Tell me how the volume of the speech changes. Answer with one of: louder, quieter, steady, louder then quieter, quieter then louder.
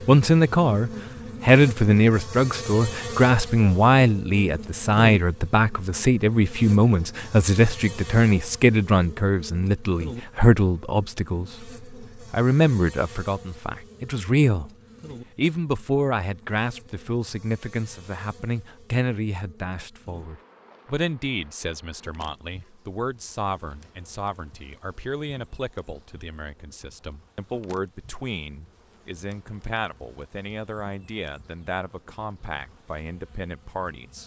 quieter.